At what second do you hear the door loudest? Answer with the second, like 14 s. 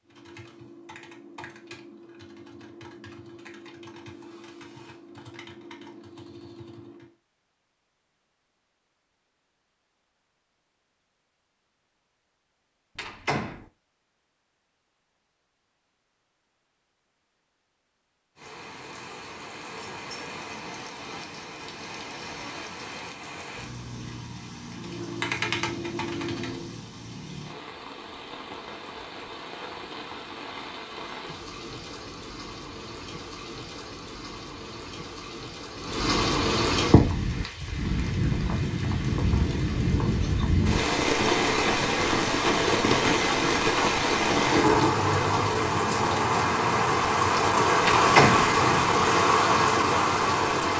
48 s.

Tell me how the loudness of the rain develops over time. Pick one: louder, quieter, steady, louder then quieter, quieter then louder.
louder.